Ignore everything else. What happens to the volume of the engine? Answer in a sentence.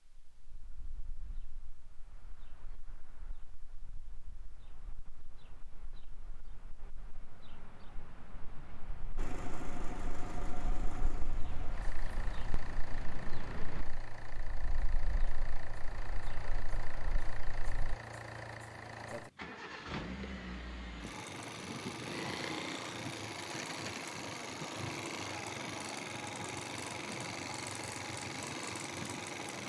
The loudness of the engine goes up.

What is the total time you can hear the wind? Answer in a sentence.
You can hear the wind for 18 seconds altogether.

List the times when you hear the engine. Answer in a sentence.
The engine can be heard from 9.2 to 29.6 s.